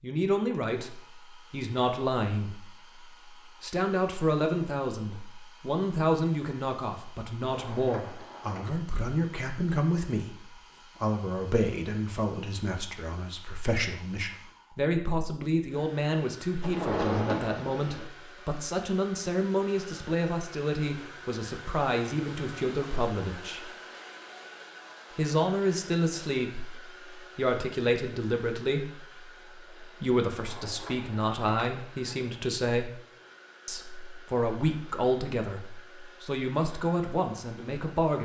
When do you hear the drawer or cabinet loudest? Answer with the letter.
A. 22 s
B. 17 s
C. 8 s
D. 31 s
B.